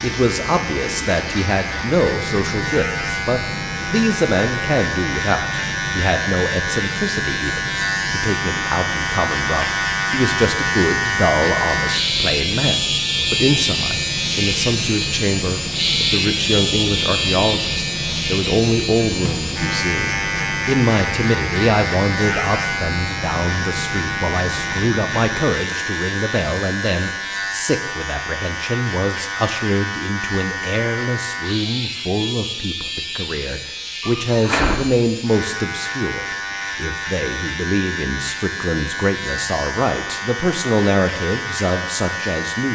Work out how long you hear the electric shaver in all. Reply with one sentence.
The electric shaver can be heard for 43 seconds in total.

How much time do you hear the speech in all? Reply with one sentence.
You can hear the speech for 43 seconds altogether.